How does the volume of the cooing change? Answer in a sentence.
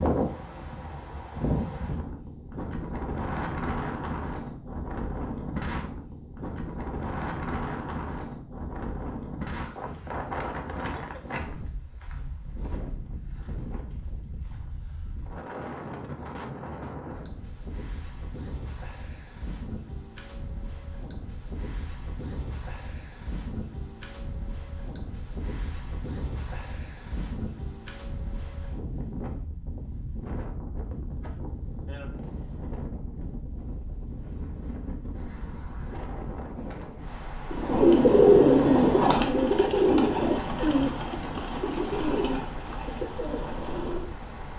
The volume of the cooing goes down.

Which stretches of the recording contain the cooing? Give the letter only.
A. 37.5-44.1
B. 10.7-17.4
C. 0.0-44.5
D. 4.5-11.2
A.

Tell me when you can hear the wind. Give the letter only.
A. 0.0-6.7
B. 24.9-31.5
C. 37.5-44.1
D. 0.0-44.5
D.